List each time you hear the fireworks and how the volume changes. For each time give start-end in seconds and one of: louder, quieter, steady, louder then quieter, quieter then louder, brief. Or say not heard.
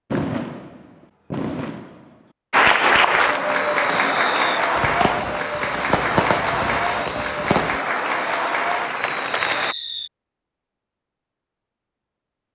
0.1-10.1 louder.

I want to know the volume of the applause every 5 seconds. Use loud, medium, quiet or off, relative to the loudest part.
loud, medium, off.